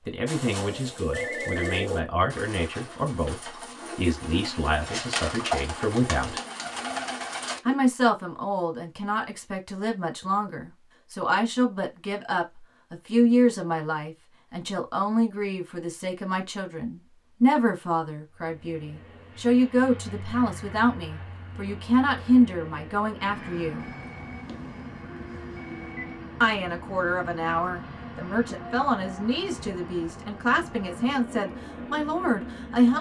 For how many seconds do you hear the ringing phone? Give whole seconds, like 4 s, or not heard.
3 s.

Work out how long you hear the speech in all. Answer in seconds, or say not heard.
29 s.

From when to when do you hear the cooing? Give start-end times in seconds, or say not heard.
0.2-7.8.